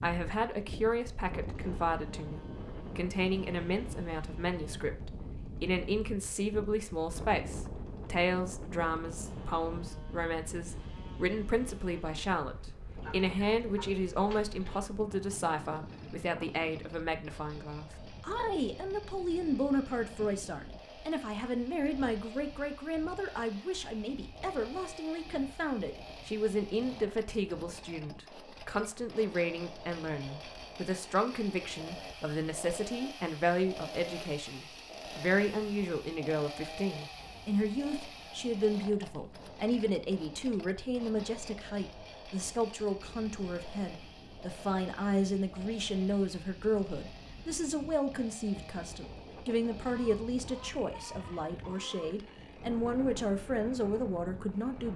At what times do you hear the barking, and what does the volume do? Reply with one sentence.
The barking can't be heard in this clip.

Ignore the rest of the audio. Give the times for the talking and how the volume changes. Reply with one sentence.
The talking can be heard from 0.0 to 54.9 s, at a steady volume.